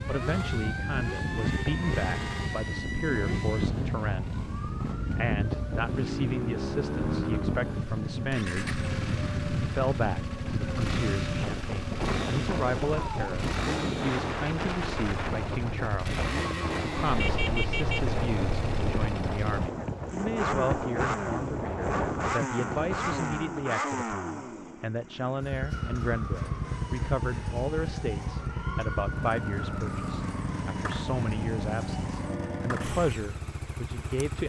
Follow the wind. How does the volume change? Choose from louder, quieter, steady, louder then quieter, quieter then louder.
steady.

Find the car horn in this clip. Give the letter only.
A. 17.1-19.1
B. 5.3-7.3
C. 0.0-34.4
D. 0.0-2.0
A.